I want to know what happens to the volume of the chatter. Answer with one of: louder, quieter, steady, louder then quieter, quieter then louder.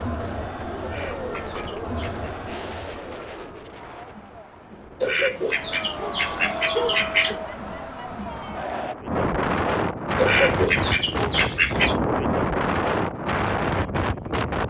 quieter then louder.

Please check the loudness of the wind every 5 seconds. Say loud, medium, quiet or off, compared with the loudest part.
quiet, medium, loud.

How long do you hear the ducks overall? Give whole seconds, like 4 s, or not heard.
6 s.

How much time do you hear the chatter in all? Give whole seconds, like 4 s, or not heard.
9 s.